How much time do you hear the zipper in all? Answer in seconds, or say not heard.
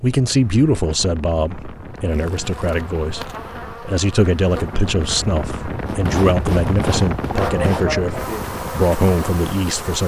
3 s.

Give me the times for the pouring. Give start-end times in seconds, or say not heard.
not heard.